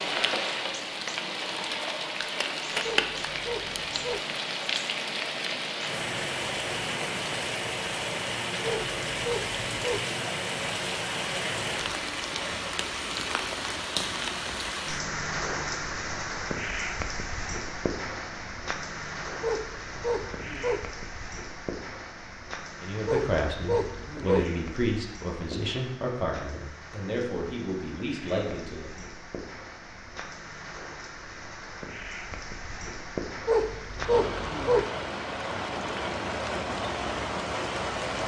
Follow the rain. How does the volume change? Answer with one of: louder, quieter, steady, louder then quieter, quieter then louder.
quieter then louder.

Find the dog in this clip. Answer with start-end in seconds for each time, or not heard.
2.8-4.2, 8.6-10.1, 19.4-20.8, 23.1-24.4, 33.5-34.9.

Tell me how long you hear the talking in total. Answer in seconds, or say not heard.
6 s.